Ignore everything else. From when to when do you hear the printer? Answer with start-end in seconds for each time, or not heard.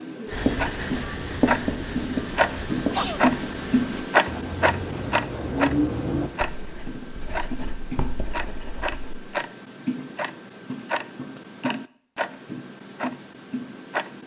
not heard.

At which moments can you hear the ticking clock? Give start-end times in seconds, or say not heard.
0.0-14.2.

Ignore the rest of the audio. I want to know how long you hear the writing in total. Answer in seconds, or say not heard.
9 s.